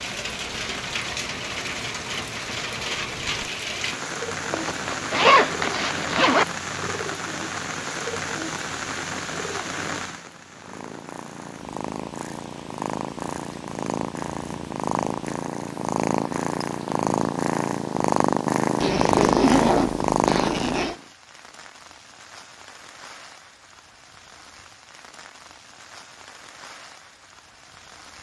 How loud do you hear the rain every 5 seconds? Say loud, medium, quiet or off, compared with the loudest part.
loud, loud, quiet, quiet, quiet, quiet.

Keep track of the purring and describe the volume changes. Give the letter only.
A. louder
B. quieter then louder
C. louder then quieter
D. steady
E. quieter
A.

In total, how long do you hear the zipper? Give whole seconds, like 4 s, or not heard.
4 s.